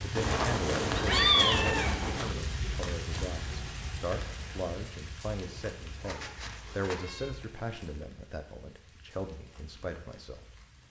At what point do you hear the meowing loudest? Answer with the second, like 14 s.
1 s.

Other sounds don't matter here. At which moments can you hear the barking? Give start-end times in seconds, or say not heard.
not heard.